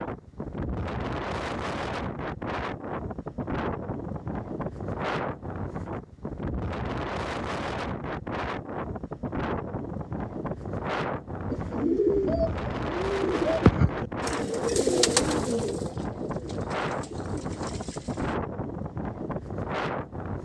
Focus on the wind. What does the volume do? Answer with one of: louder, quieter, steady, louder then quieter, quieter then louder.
steady.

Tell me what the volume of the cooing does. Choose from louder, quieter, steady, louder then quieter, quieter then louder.
quieter.